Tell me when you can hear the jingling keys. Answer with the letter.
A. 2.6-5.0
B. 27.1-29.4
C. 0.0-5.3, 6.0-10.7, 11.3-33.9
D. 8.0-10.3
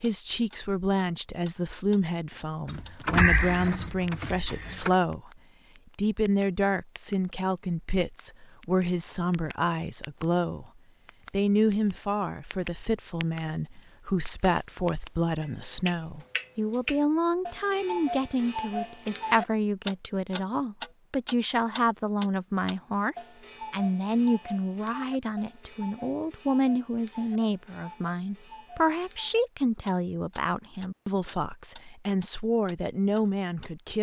A.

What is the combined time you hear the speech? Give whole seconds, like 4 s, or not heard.
33 s.